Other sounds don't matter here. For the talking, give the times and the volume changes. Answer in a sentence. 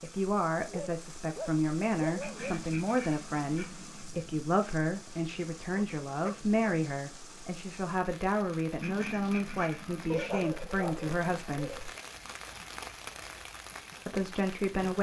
You can hear the talking from 0.0 to 11.9 s, at a steady volume; and briefly from 14.1 to 14.9 s.